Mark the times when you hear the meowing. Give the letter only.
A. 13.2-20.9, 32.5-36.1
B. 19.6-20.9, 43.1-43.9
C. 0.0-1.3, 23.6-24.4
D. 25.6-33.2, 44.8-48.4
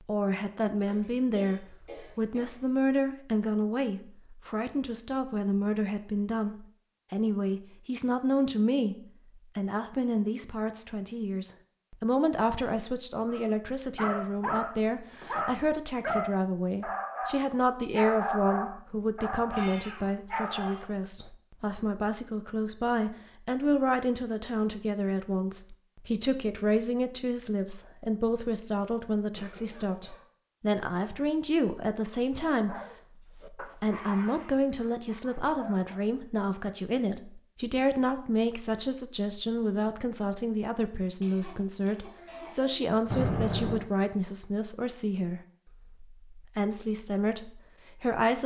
B.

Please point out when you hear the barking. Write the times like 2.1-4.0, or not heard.
13.2-20.9, 32.5-36.1.